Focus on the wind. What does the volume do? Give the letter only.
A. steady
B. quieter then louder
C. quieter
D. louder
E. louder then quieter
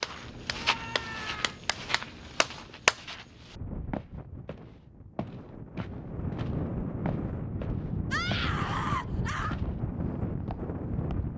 D.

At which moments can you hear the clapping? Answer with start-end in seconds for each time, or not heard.
0.0-3.0.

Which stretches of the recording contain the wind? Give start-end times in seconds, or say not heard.
3.5-11.3.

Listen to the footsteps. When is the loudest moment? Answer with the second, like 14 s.
1 s.